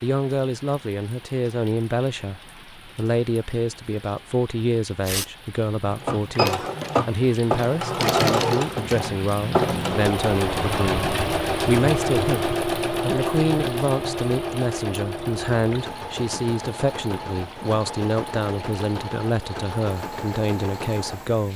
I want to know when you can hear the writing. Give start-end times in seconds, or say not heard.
not heard.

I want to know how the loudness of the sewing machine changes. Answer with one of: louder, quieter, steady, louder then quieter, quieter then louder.
quieter.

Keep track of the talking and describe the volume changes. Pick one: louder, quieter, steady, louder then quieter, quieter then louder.
steady.